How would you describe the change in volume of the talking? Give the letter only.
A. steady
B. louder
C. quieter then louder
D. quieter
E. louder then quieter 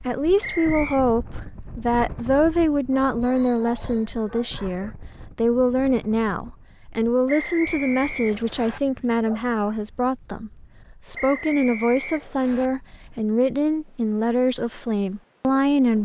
A.